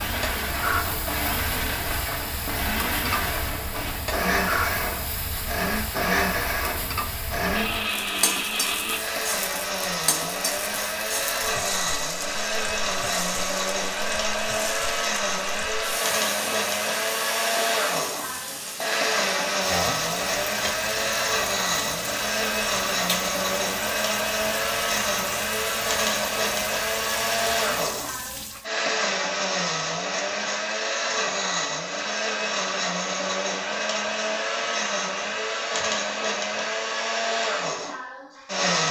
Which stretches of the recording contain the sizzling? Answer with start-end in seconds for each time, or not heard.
0.0-28.6.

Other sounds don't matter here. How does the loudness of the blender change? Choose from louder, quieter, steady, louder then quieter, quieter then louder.
steady.